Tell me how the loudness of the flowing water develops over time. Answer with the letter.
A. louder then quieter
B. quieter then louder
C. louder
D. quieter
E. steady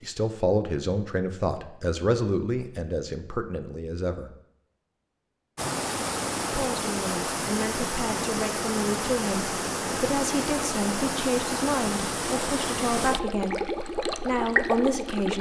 E.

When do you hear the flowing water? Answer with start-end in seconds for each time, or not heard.
5.5-15.3.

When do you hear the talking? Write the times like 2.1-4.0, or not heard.
0.0-4.3, 6.5-15.3.